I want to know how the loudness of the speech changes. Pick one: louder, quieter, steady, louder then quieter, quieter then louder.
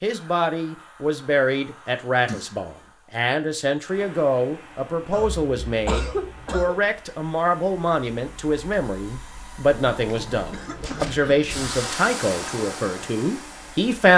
steady.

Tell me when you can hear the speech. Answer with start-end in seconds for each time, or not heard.
0.0-14.1.